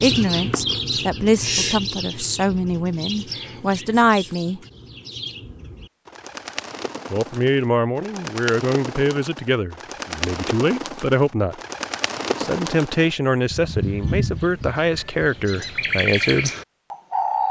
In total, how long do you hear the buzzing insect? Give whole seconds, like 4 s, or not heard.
not heard.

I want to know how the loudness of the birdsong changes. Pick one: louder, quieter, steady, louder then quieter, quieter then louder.
quieter then louder.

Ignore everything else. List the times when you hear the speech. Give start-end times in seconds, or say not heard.
0.0-4.6, 7.1-11.6, 12.3-16.5.